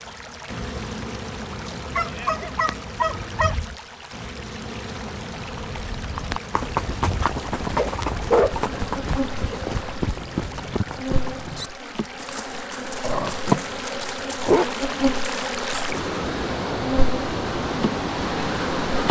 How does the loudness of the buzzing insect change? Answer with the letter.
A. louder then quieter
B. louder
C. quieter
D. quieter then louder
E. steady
B.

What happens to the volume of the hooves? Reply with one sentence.
The volume of the hooves goes down.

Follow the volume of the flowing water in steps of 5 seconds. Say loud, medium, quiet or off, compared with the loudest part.
quiet, quiet, medium, loud.